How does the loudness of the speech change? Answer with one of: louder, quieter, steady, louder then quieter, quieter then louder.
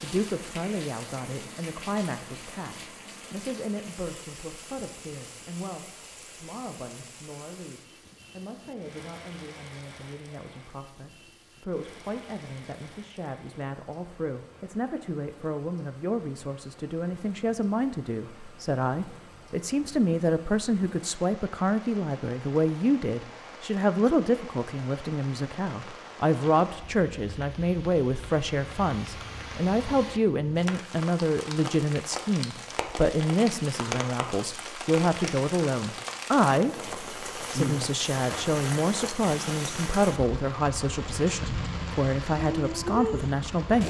louder.